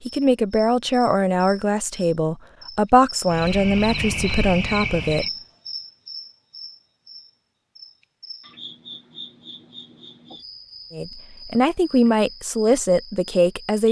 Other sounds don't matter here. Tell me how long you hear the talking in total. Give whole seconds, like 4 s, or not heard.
8 s.